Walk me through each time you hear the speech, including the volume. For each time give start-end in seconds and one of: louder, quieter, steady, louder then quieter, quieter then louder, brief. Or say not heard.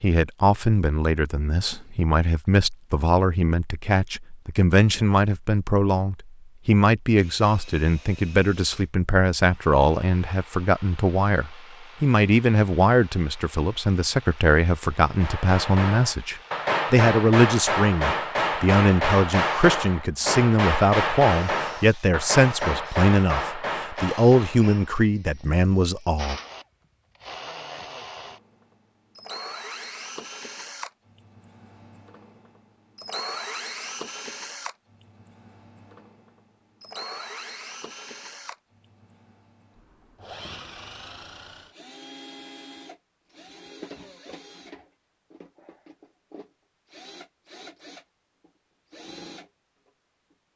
0.0-26.4 steady.